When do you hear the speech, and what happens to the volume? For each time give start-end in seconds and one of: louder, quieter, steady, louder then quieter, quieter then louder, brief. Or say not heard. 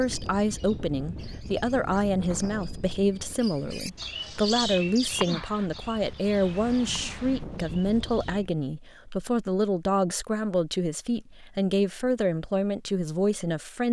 0.0-13.8 steady.